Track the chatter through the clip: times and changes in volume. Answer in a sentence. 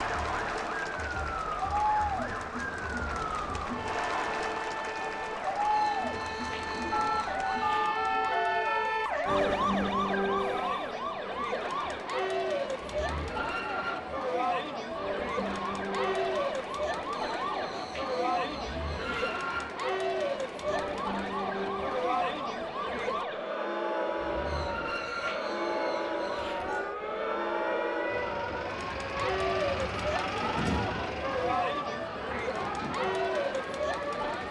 The chatter can be heard from 0.0 to 34.4 s, at a steady volume.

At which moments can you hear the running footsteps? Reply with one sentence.
You can't hear the running footsteps here.